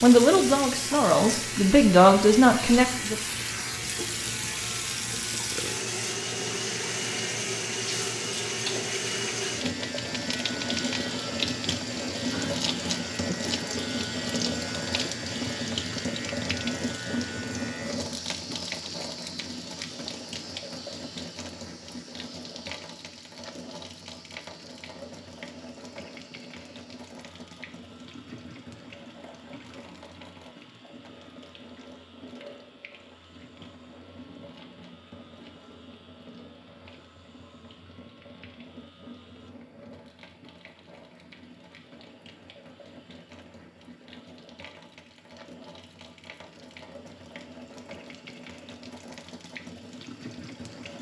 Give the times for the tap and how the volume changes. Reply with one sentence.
You can hear the tap from 0.0 to 50.9 s, getting quieter.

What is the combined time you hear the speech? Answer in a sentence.
You can hear the speech for 3 seconds altogether.